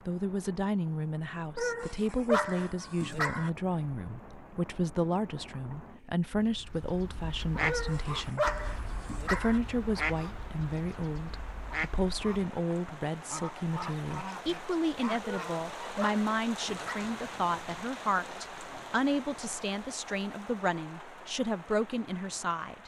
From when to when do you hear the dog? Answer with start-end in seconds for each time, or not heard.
1.6-3.5, 7.7-9.6, 15.2-17.1.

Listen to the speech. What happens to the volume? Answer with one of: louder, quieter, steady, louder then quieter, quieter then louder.
steady.